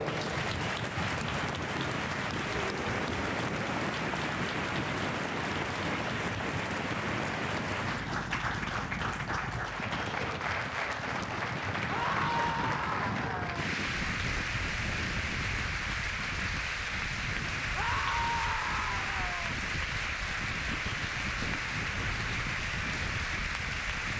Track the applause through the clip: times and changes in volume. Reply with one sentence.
The applause can be heard from 0.0 to 24.1 s, at a steady volume.